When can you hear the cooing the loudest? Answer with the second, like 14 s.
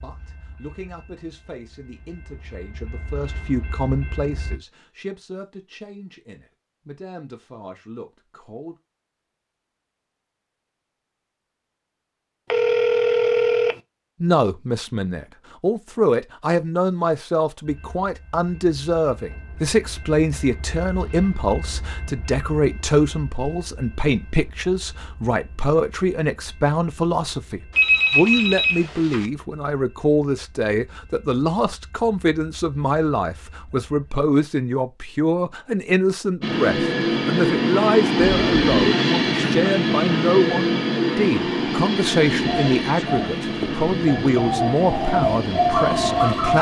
46 s.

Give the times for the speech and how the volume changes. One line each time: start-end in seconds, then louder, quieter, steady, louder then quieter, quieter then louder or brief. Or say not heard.
0.0-8.8 louder then quieter
14.2-46.5 steady.